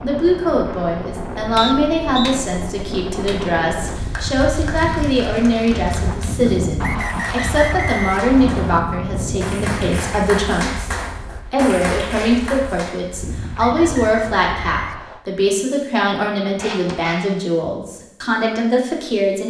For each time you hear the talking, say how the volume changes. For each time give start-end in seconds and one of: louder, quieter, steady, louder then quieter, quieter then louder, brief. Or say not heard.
0.0-19.4 steady.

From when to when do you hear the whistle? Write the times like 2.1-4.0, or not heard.
1.6-2.4, 6.8-8.8, 13.6-15.2.